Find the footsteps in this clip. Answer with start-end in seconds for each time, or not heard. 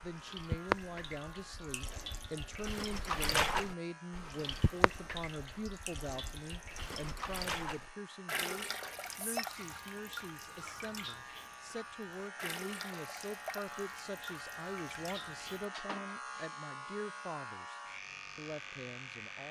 not heard.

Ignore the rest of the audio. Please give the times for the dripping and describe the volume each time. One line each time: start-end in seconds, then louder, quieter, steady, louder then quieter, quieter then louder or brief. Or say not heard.
0.0-15.7 quieter.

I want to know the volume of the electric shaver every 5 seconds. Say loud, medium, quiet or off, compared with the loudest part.
medium, medium, loud, loud.